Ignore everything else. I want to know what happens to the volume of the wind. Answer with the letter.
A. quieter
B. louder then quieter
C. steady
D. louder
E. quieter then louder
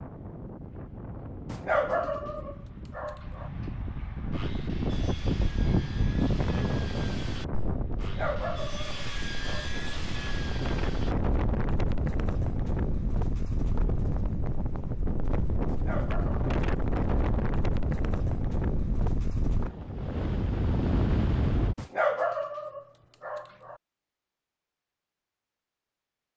D.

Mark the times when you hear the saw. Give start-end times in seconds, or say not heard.
4.2-11.2.